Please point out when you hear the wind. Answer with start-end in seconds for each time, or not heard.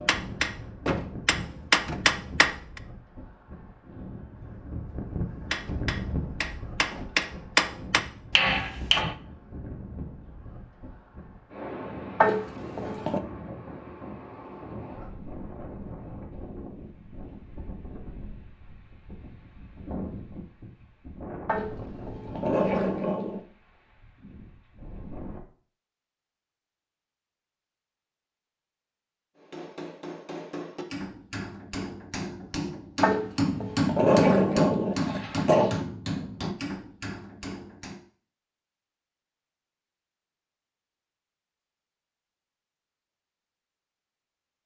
0.0-25.4.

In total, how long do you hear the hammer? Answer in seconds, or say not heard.
15 s.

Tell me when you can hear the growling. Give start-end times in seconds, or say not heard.
12.2-13.2, 21.4-23.4, 33.0-35.8.